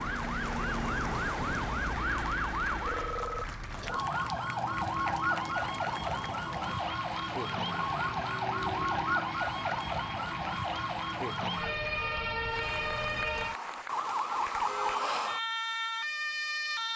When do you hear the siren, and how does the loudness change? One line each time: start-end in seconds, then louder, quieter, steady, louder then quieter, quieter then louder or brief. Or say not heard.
0.0-16.9 steady.